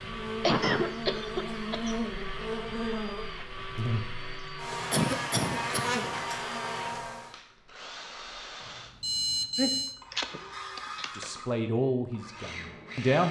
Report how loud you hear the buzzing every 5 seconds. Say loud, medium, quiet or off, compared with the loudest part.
loud, loud, off.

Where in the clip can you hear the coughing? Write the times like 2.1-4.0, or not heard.
0.4-1.9, 4.9-6.1, 9.6-11.3.